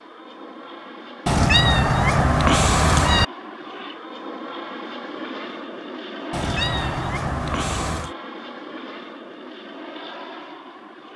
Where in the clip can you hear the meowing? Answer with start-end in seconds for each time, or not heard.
1.2-3.2, 6.3-8.2.